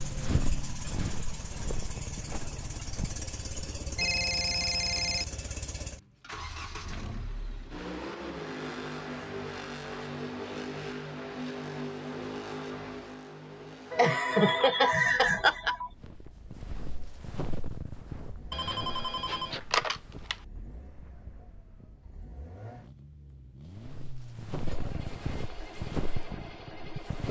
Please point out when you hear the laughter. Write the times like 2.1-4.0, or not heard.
13.9-15.8.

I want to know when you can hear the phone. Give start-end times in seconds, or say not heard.
4.0-5.2, 14.2-15.9, 18.5-20.4.